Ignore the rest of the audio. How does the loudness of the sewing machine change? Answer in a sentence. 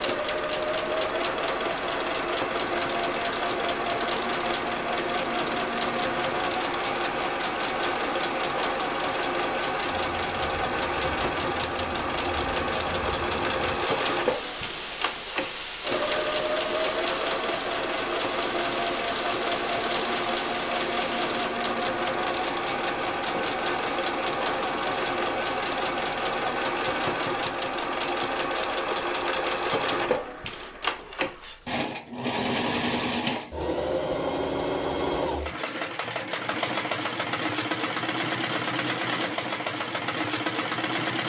The loudness of the sewing machine stays about the same.